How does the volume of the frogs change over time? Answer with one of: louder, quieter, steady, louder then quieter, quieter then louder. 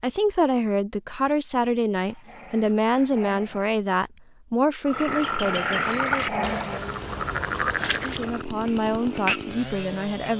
quieter.